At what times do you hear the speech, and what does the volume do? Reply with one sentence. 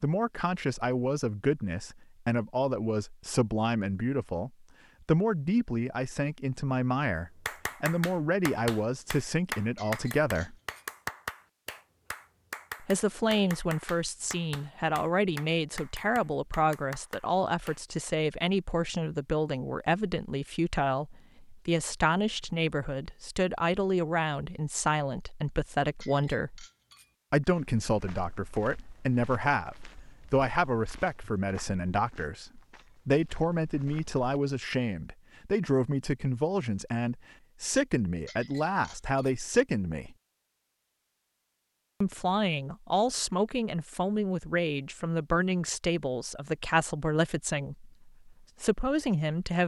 The speech can be heard from 0.0 to 10.6 s, at a steady volume; from 12.8 to 26.6 s, at a steady volume; from 27.3 to 40.1 s, at a steady volume; and from 42.0 to 49.6 s, at a steady volume.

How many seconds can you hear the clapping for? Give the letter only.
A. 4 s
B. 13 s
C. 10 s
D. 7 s
C.